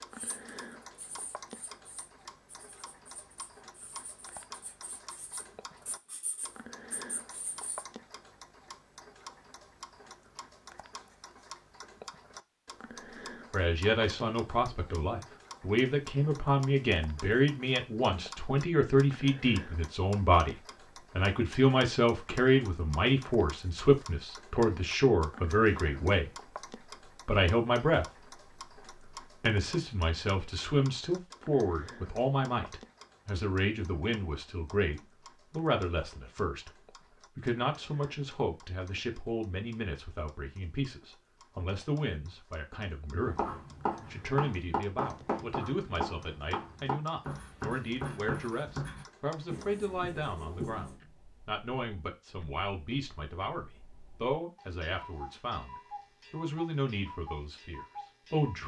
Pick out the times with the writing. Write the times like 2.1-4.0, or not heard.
0.1-7.8, 43.2-51.0.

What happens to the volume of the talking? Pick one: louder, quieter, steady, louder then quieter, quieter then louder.
quieter.